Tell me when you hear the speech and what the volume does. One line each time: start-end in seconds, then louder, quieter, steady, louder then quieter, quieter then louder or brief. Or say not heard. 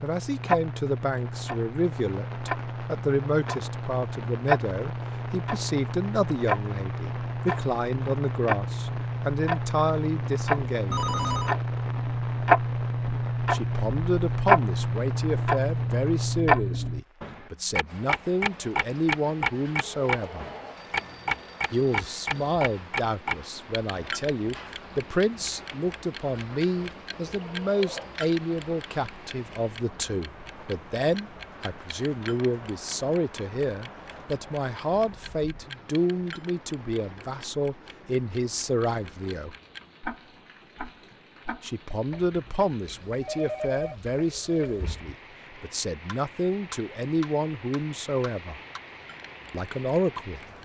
0.0-11.1 steady
13.5-20.4 steady
21.7-39.5 steady
41.6-48.6 steady
49.5-50.4 brief.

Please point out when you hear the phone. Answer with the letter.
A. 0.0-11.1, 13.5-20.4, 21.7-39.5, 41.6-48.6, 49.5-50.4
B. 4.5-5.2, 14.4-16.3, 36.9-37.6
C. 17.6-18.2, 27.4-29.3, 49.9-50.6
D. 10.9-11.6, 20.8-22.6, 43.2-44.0
D.